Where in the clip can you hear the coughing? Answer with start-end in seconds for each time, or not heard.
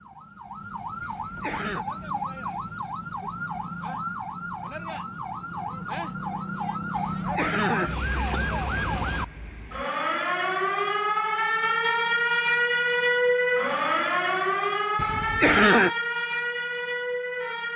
1.0-1.9, 7.0-8.4, 14.9-15.9.